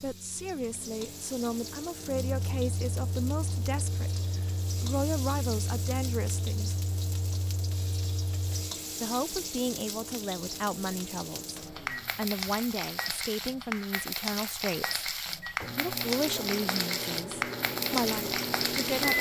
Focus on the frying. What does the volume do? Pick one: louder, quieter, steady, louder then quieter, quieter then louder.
louder.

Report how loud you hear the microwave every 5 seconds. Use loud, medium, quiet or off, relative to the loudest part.
medium, medium, medium, loud.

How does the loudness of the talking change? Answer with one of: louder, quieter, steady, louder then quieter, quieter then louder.
steady.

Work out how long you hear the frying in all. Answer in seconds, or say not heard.
19 s.